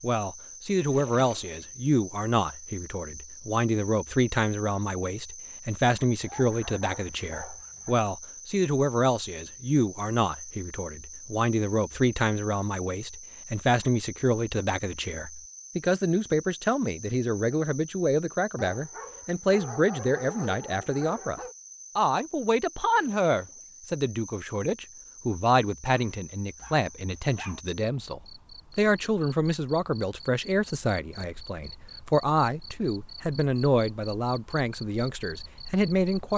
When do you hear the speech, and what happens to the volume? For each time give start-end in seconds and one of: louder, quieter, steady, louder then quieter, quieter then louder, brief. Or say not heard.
0.0-36.3 steady.